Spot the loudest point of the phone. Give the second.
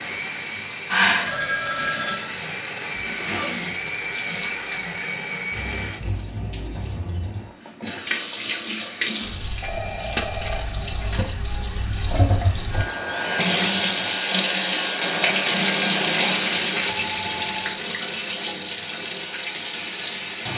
1 s.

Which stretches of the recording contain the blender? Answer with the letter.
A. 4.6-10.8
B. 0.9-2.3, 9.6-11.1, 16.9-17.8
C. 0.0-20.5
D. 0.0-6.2
D.